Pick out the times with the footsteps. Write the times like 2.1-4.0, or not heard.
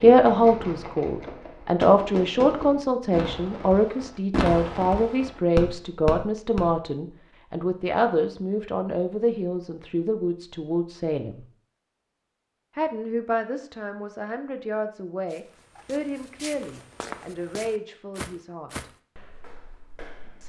15.3-20.4.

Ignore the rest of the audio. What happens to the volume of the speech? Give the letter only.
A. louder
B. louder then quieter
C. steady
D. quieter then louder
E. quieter
E.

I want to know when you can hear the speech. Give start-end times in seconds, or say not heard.
0.0-11.4, 12.8-18.9.